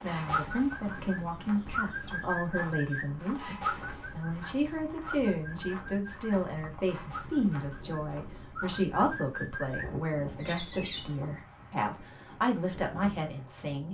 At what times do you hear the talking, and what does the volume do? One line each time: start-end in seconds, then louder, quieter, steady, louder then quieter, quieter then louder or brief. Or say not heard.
0.0-13.8 steady.